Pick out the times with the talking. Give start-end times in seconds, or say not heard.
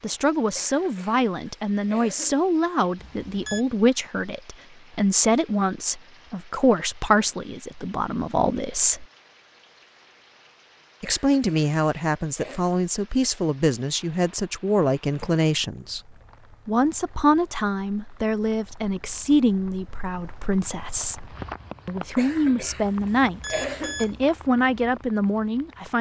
0.0-9.1, 11.0-21.2, 21.9-25.9.